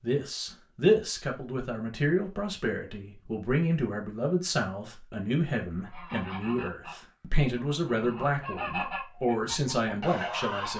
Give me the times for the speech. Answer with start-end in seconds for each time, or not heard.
0.0-10.7.